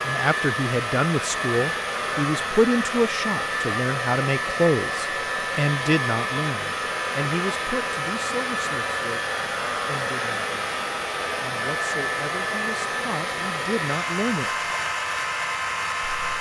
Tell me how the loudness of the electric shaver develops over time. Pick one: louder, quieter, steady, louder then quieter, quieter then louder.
steady.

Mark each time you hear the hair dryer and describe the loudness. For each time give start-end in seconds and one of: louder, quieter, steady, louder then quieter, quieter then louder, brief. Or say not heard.
0.0-16.3 steady.